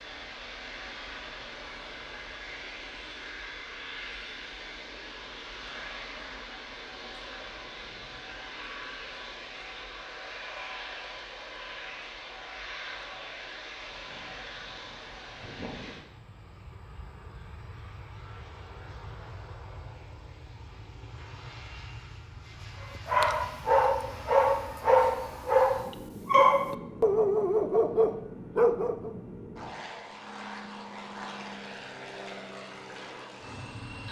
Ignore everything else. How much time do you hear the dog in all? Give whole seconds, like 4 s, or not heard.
6 s.